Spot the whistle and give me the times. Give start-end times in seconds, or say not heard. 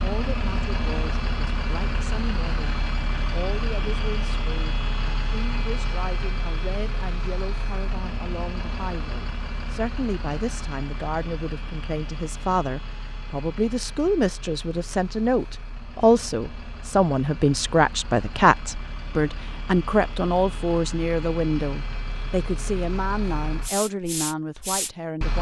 not heard.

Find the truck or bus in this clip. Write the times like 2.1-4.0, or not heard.
0.0-25.3.